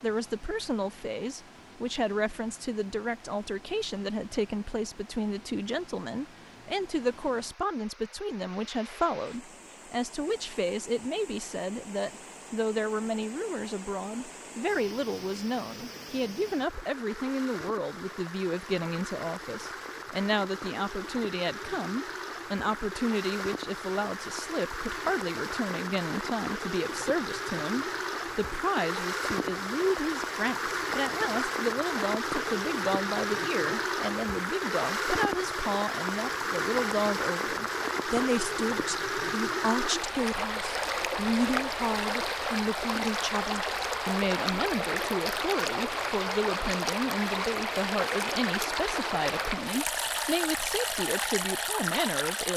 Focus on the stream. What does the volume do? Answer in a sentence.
The loudness of the stream goes up.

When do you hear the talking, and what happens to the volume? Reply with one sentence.
The talking can be heard from 0.0 to 52.5 s, at a steady volume.